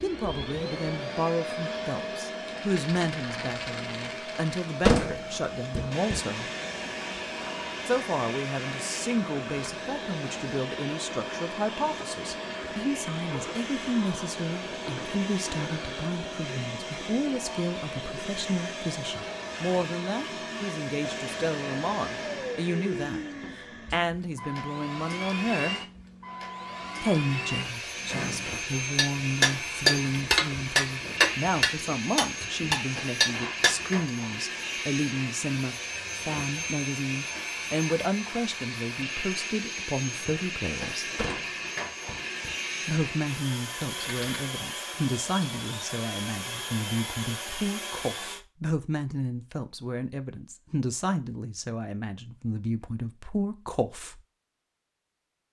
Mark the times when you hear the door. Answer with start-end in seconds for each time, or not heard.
4.8-6.2, 41.1-42.5.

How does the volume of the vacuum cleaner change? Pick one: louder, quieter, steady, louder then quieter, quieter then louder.
steady.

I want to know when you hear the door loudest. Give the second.
5 s.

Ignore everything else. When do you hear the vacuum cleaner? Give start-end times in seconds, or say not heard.
0.0-48.4.